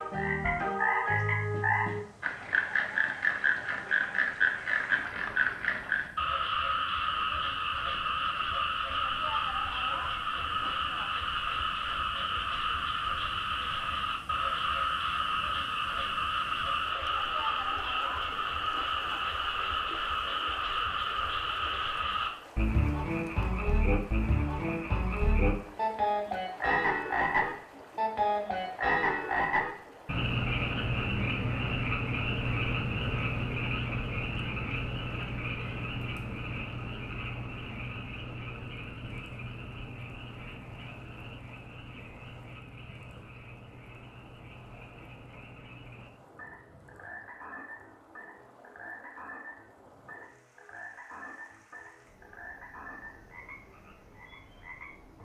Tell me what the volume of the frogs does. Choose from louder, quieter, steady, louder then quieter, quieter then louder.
quieter.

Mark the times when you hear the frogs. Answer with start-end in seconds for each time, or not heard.
0.0-55.1.